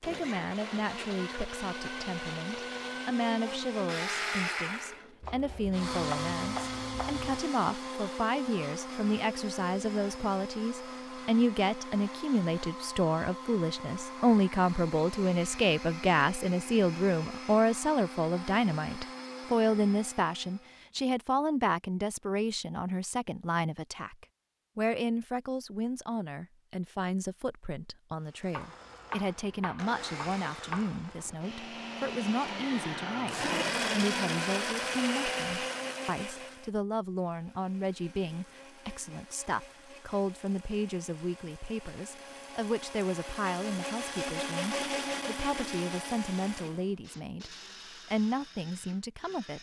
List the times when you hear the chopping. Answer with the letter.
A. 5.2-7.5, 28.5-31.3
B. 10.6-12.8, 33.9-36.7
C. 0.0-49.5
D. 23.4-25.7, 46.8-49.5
A.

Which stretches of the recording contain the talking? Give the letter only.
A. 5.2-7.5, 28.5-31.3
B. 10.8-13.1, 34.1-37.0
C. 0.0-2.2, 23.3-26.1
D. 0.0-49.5
D.